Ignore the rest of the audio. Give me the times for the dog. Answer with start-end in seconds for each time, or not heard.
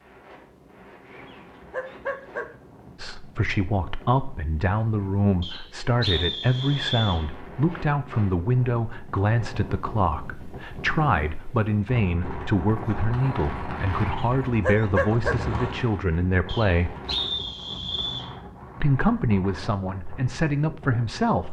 1.1-2.5, 14.1-15.3.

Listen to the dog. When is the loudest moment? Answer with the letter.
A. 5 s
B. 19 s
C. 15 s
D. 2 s
C.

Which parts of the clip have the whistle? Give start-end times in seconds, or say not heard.
5.4-7.2, 16.4-18.3.